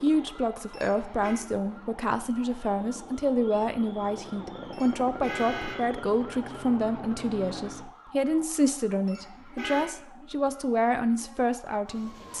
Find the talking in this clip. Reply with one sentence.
The talking can be heard from 0.0 to 12.3 s.